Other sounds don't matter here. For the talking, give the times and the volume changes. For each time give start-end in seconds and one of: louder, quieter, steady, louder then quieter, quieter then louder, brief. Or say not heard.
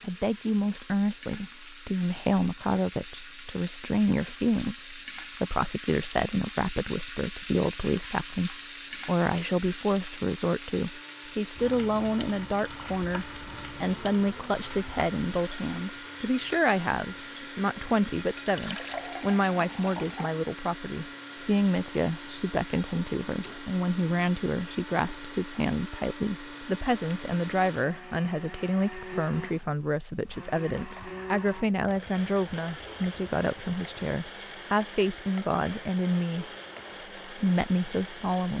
0.0-36.5 steady
37.2-38.5 brief.